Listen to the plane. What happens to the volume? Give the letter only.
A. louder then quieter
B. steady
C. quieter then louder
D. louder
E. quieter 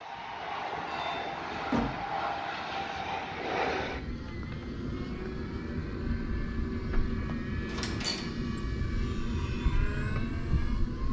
B.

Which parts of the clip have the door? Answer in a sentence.
The door can be heard from 0.8 to 1.9 s and from 7.7 to 8.2 s.